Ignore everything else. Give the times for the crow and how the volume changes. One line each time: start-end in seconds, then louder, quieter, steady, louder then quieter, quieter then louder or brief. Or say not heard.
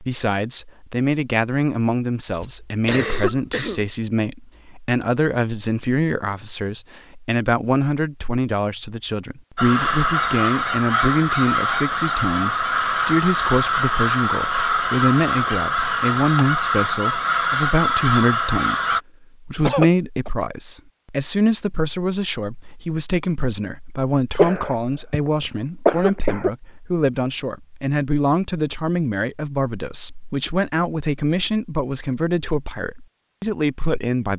9.6-19.0 steady.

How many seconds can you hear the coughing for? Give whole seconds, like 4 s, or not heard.
4 s.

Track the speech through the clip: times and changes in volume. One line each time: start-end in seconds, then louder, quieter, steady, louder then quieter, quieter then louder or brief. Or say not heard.
0.0-34.3 steady.